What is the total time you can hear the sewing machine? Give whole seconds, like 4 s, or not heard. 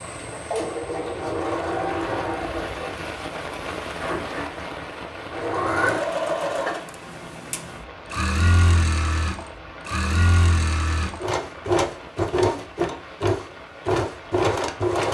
15 s.